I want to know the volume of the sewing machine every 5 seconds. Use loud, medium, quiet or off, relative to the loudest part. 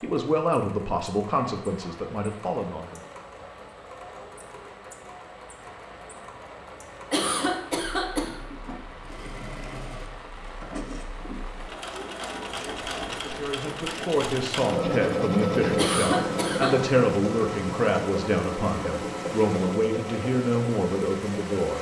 quiet, quiet, medium, loud, medium.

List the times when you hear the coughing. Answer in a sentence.
The coughing can be heard from 7.1 to 8.4 s and from 15.8 to 16.7 s.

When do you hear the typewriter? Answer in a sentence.
The typewriter can't be heard in this clip.